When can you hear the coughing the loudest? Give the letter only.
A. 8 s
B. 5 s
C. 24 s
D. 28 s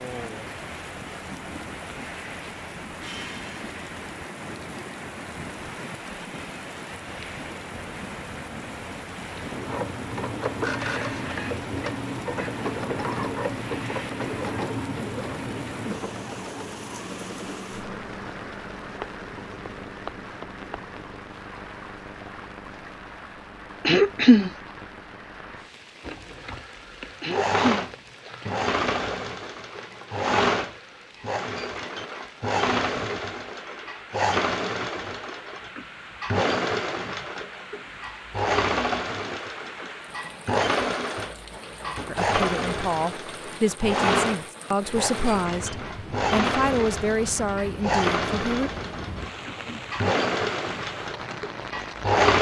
C.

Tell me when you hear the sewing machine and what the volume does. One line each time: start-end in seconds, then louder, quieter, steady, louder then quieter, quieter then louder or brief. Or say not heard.
9.5-21.2 quieter
26.0-52.3 steady.